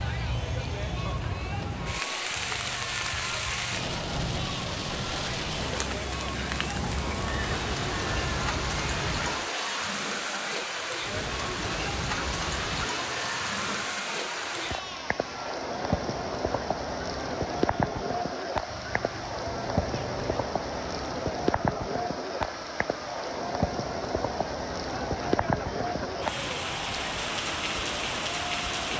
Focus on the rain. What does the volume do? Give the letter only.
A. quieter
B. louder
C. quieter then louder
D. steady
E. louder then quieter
D.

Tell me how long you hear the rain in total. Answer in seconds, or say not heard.
29 s.